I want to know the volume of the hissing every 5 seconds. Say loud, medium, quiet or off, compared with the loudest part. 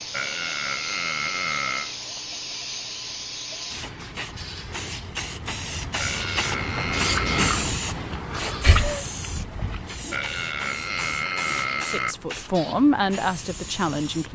medium, loud, medium.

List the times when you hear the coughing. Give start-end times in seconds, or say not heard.
8.6-9.1.